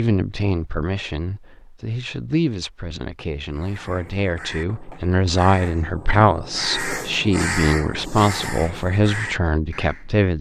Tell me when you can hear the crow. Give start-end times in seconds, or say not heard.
3.5-10.1.